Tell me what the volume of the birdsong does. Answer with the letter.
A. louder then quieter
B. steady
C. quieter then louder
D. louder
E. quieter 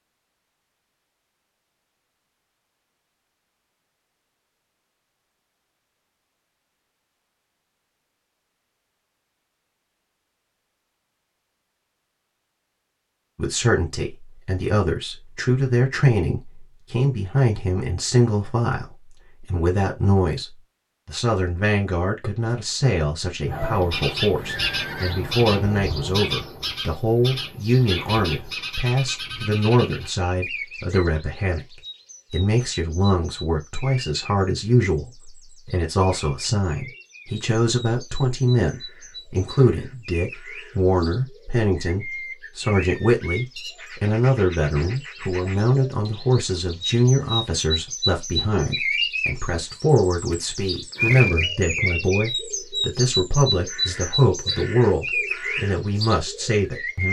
C.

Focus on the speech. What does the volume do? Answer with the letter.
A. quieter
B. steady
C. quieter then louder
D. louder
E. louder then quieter
B.